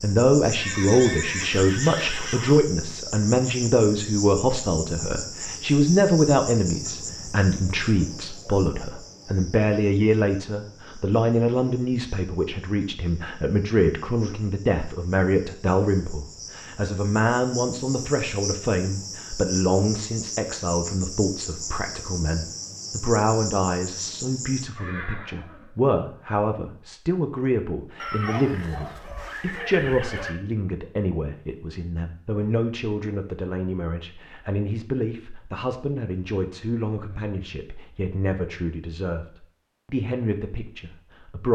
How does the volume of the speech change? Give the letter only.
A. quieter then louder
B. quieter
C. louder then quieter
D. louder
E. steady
B.